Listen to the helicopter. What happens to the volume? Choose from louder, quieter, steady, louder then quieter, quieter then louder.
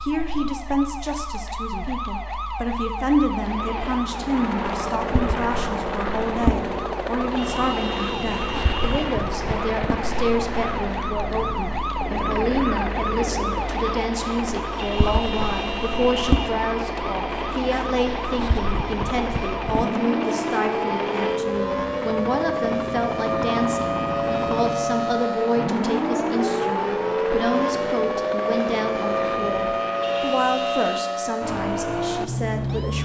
steady.